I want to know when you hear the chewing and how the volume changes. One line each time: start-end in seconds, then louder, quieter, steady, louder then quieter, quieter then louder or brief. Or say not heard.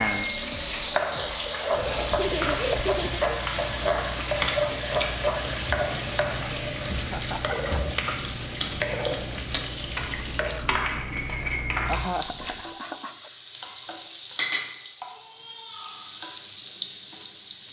1.7-12.6 steady.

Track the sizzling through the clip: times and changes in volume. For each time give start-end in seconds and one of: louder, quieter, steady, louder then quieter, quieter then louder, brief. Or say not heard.
0.0-17.6 quieter.